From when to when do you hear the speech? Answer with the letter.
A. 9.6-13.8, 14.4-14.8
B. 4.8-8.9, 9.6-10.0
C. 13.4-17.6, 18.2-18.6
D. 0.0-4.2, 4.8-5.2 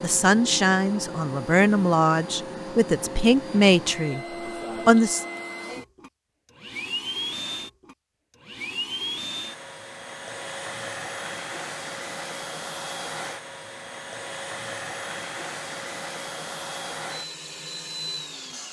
D.